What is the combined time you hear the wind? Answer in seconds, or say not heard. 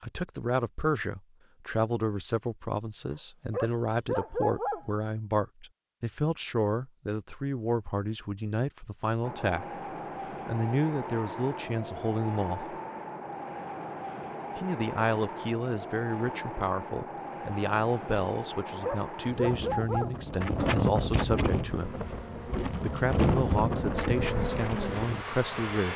17 s.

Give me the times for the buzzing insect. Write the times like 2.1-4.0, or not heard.
21.4-25.9.